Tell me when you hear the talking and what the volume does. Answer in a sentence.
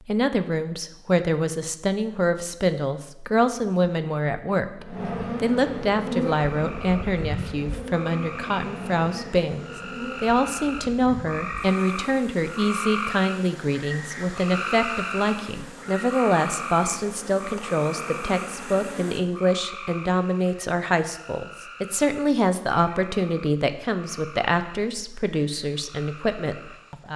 You can hear the talking from 0.1 to 27.1 s, at a steady volume.